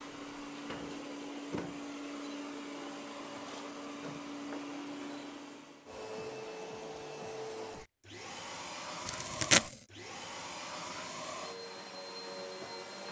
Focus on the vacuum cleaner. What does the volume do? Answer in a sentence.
The loudness of the vacuum cleaner stays about the same.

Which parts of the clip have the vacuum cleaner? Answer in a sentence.
The vacuum cleaner can be heard from 0.0 to 13.0 s.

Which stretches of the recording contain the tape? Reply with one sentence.
The tape can be heard from 9.1 to 9.8 s.